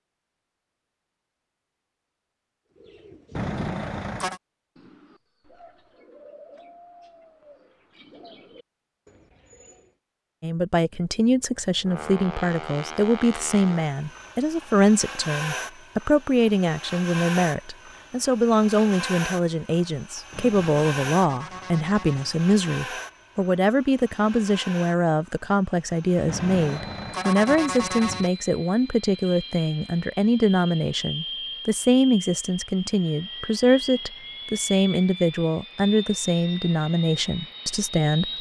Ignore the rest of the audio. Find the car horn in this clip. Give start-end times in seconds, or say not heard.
3.4-4.4, 20.3-22.4, 26.2-28.3.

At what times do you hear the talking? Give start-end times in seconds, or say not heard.
10.4-38.3.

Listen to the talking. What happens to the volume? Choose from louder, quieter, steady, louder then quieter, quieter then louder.
steady.